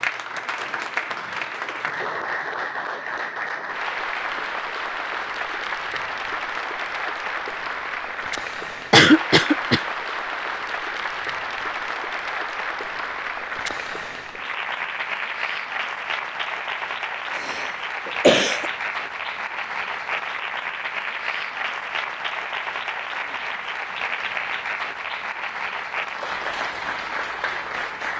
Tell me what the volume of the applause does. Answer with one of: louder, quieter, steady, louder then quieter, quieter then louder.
steady.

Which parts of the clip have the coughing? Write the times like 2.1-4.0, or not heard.
8.9-9.8, 17.4-18.7.